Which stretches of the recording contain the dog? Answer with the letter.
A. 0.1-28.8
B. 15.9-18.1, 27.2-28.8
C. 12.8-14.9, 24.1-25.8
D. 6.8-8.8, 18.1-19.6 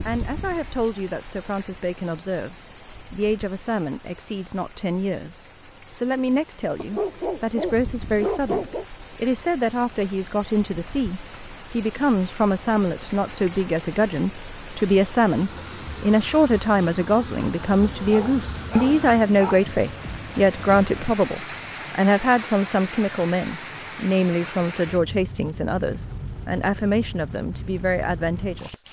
D.